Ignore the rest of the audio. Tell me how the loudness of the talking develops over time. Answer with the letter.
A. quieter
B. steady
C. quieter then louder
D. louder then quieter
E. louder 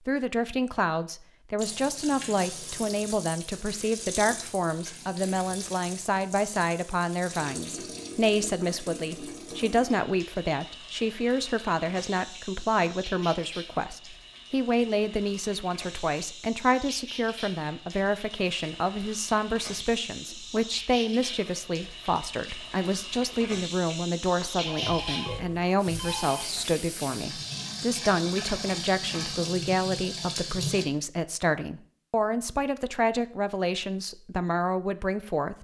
B.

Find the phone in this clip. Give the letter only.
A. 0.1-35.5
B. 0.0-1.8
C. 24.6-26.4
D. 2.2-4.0
C.